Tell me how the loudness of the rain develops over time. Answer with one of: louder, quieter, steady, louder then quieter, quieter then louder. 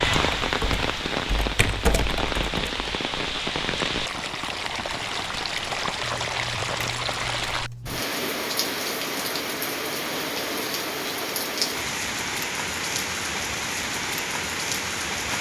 steady.